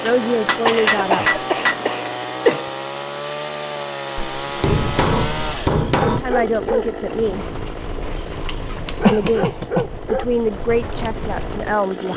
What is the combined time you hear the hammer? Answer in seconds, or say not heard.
5 s.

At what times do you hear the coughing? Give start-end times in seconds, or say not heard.
0.7-2.6, 9.0-9.9.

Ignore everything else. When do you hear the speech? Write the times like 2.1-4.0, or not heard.
0.0-1.4, 6.2-7.5, 9.1-12.1.